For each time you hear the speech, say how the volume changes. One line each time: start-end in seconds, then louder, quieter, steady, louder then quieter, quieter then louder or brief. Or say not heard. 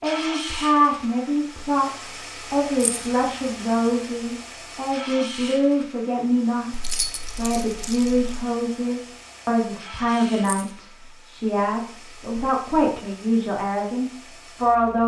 0.0-15.0 steady.